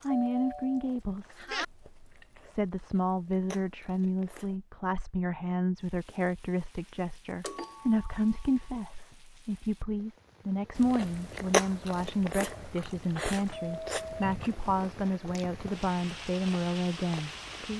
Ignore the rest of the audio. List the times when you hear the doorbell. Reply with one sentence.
The doorbell can be heard from 0.1 to 1.6 s, from 7.4 to 8.5 s and from 13.5 to 14.3 s.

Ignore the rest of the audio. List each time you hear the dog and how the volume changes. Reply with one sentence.
The dog can't be heard in this clip.